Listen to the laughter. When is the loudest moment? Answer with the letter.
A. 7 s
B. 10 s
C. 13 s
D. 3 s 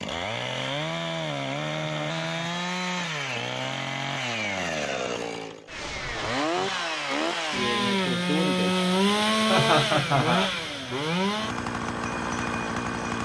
B.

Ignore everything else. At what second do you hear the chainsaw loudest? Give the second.
9 s.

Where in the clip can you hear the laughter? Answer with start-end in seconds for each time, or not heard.
2.0-2.8, 6.0-7.0, 9.4-10.5.